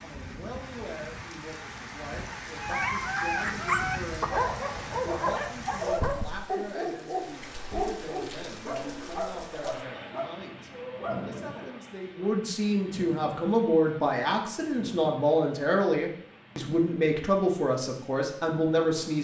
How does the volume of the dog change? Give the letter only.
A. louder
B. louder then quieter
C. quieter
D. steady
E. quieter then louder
C.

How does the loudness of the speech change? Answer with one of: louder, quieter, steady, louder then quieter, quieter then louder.
louder.